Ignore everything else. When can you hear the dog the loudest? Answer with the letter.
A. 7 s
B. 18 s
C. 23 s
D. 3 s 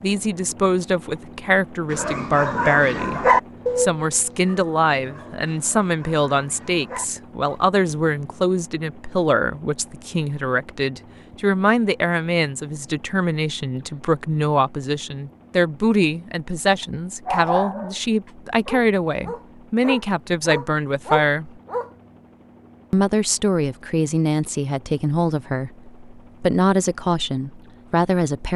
D.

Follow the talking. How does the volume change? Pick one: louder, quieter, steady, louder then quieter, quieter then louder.
steady.